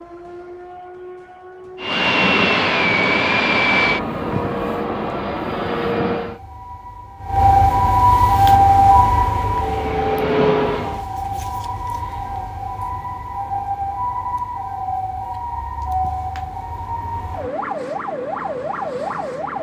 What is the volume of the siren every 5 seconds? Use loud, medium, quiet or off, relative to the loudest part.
quiet, loud, medium, medium.